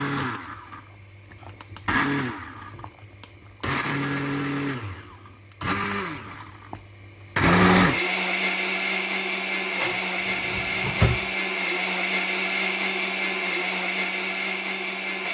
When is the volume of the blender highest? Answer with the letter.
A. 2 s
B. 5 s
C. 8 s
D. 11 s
C.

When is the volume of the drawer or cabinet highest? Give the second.
11 s.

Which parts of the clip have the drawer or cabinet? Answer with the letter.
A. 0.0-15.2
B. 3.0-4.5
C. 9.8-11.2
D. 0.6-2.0
C.